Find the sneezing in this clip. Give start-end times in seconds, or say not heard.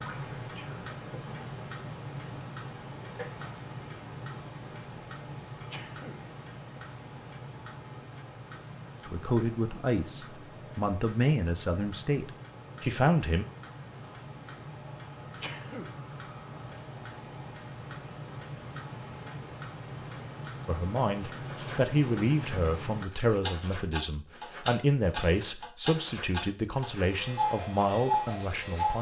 5.7-6.2, 15.4-15.9.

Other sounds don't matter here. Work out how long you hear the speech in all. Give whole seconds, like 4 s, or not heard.
13 s.